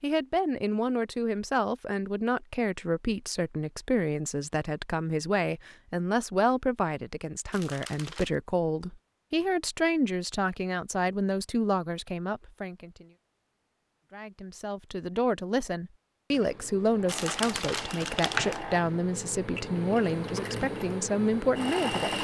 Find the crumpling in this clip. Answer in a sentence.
The crumpling can be heard from 7.5 to 8.3 s and from 17.1 to 18.6 s.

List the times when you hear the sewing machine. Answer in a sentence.
The sewing machine can be heard from 16.3 to 22.1 s.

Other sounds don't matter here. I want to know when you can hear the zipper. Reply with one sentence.
The zipper can't be heard in this clip.